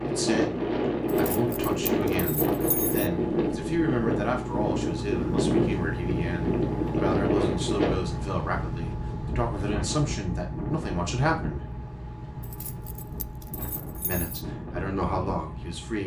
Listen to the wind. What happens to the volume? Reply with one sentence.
The loudness of the wind goes down.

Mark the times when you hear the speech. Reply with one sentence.
You can hear the speech from 0.0 to 11.7 s and from 14.0 to 16.0 s.